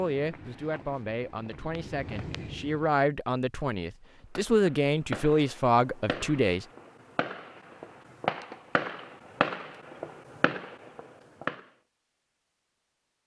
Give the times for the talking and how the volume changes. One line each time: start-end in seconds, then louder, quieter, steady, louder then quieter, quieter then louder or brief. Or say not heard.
0.0-6.7 louder.